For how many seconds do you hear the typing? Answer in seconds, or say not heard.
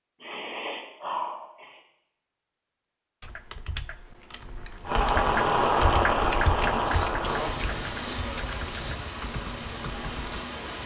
7 s.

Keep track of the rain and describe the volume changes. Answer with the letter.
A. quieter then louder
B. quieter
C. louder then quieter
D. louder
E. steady
B.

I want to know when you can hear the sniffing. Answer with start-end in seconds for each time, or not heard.
0.2-1.8, 6.8-8.9.